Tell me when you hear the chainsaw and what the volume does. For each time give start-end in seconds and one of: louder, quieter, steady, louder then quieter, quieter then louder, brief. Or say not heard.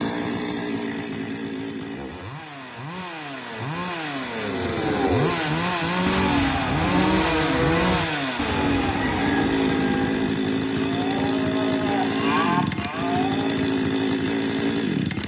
0.0-15.2 louder.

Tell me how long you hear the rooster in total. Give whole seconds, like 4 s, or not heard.
3 s.